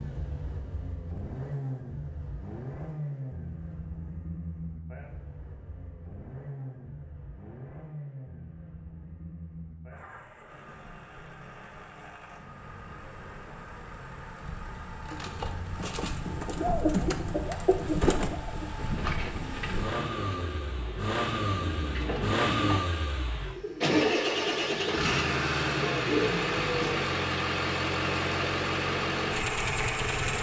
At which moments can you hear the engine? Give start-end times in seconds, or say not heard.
0.0-30.3.